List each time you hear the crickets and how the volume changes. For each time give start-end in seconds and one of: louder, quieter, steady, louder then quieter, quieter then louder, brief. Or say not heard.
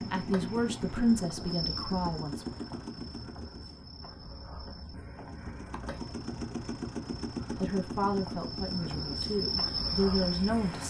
0.0-10.8 quieter then louder.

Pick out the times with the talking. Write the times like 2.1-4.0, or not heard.
0.0-2.5, 7.5-10.8.